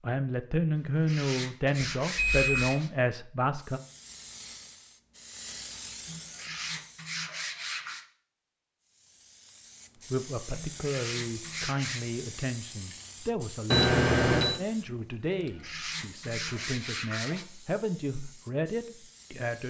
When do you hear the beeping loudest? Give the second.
14 s.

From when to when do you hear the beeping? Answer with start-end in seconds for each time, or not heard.
2.0-2.8, 13.7-14.6.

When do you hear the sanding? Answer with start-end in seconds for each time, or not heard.
0.8-2.9, 6.0-8.1, 10.6-12.1, 15.3-17.4.